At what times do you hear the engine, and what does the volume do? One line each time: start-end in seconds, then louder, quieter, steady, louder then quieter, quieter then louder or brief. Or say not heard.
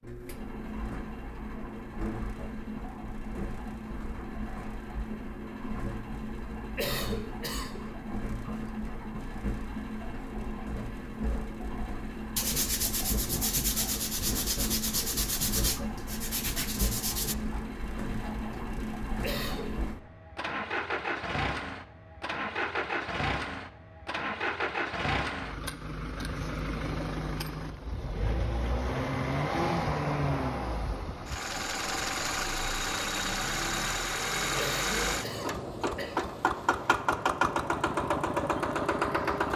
0.0-39.5 louder.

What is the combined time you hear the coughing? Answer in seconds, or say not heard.
3 s.